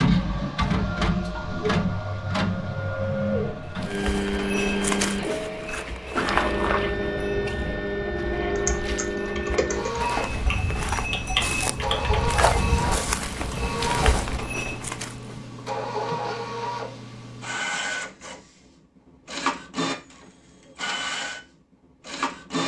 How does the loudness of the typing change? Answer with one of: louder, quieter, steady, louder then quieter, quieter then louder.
louder then quieter.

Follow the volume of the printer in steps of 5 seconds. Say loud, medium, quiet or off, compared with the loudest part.
loud, loud, medium, medium, medium.